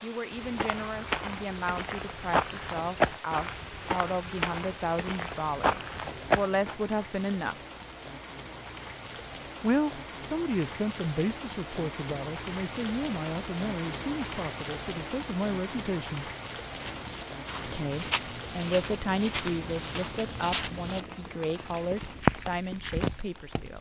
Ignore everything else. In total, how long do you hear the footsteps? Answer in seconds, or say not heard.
13 s.